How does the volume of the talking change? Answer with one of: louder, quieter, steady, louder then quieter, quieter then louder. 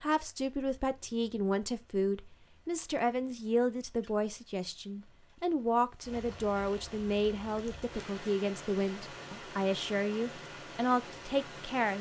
steady.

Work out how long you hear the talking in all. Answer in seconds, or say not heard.
12 s.